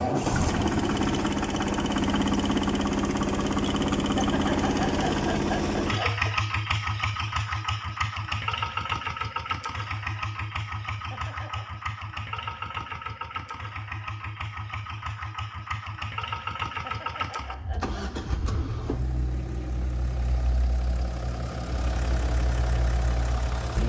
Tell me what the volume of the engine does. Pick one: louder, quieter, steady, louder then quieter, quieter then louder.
quieter.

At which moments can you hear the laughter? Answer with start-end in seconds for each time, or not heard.
4.0-6.3, 10.9-11.8, 16.6-18.0.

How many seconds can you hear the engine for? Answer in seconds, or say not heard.
24 s.